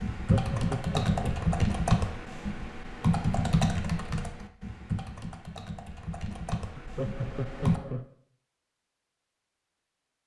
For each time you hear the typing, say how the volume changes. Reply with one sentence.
The typing can be heard from 0.0 to 7.8 s, getting quieter.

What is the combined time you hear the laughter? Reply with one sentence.
You can hear the laughter for 3 seconds altogether.